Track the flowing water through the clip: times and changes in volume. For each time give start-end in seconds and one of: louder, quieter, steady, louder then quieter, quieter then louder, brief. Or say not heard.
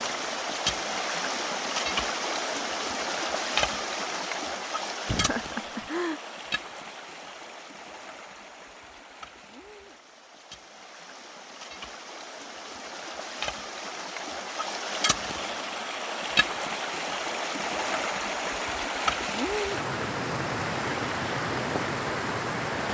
0.0-22.8 quieter then louder.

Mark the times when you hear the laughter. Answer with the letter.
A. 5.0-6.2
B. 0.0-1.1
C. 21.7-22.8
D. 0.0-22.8
A.